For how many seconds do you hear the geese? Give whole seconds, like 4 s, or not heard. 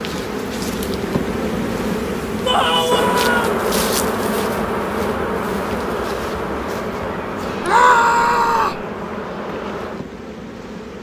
not heard.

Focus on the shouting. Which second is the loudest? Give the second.
8 s.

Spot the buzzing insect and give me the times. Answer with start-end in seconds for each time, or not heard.
0.0-10.9.